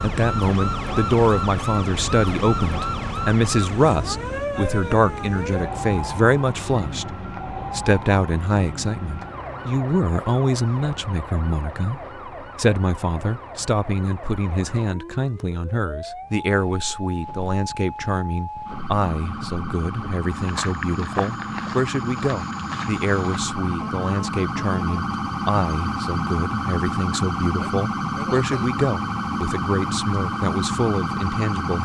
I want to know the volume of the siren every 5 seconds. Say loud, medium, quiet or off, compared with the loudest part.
loud, medium, medium, medium, loud, loud, loud.